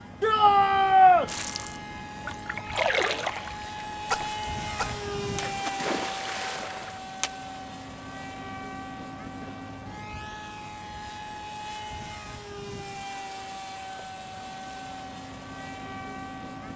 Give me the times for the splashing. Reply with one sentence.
You can hear the splashing from 1.2 to 7.3 s.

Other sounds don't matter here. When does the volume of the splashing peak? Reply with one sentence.
The volume of the splashing peaks at 3 seconds.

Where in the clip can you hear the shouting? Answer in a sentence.
The shouting can be heard from 0.2 to 1.3 s.